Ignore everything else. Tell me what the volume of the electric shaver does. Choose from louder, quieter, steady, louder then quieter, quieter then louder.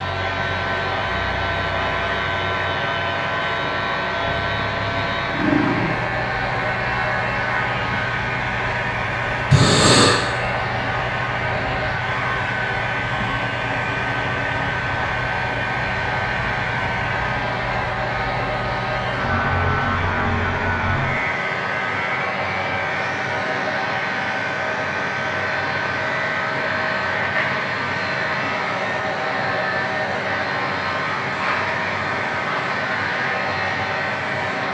steady.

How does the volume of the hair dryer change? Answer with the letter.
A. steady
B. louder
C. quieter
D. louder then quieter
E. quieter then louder
A.